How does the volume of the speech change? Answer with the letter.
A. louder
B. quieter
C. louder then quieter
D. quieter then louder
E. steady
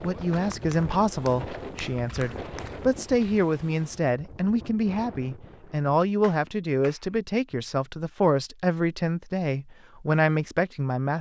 E.